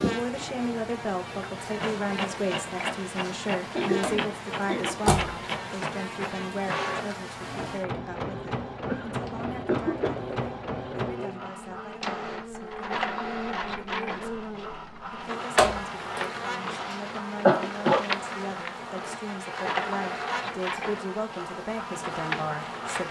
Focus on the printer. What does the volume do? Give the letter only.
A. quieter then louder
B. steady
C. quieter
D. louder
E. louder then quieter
B.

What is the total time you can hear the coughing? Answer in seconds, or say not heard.
3 s.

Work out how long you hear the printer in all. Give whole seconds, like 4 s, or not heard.
23 s.